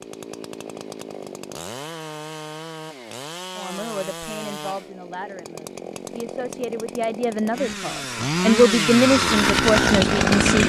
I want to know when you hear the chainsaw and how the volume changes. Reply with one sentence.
The chainsaw can be heard from 0.0 to 10.6 s, getting louder.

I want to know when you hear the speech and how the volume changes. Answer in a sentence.
The speech can be heard from 3.5 to 10.6 s, getting louder.